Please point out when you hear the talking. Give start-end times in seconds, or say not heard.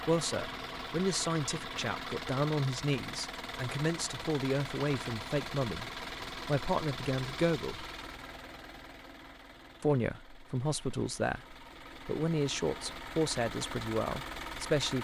0.1-7.8, 9.8-14.9.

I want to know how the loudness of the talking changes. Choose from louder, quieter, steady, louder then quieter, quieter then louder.
steady.